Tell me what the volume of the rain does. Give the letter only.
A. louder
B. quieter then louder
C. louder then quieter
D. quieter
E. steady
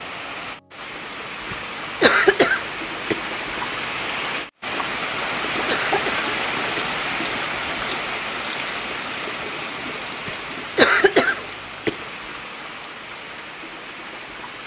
C.